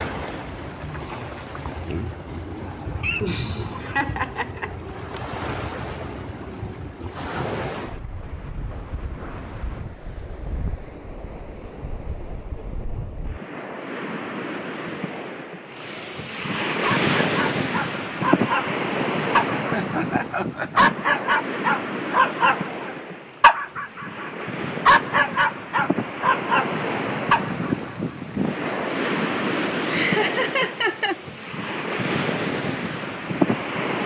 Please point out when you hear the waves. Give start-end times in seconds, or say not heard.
0.0-34.0.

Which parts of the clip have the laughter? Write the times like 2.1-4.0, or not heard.
3.0-5.2, 19.5-20.9, 29.8-31.1.